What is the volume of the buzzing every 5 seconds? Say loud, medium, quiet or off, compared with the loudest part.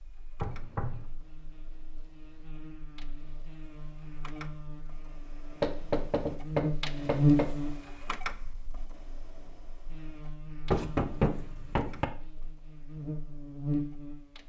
quiet, loud, medium.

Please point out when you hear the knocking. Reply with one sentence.
The knocking can be heard from 0.4 to 1.1 s, from 5.6 to 7.5 s and from 10.7 to 12.1 s.